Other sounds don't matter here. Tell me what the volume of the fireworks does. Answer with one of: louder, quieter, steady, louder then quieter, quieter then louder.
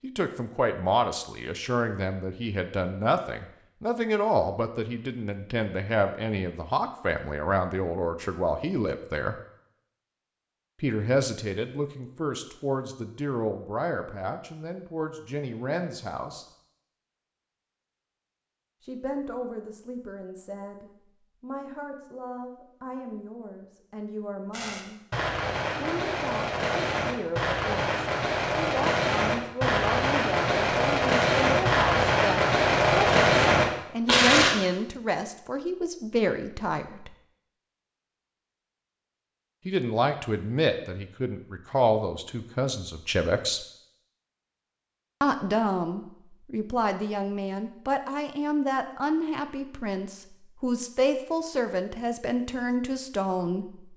louder.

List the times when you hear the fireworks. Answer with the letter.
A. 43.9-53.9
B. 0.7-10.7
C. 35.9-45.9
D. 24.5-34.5
D.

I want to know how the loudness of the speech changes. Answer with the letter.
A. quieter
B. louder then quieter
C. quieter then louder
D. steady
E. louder
C.